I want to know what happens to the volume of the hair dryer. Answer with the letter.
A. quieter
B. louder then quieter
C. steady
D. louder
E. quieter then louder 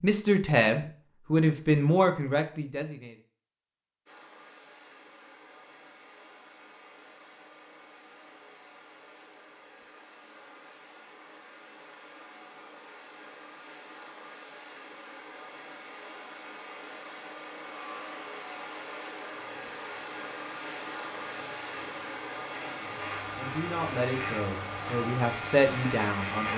D.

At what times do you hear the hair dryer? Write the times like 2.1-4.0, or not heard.
4.0-26.5.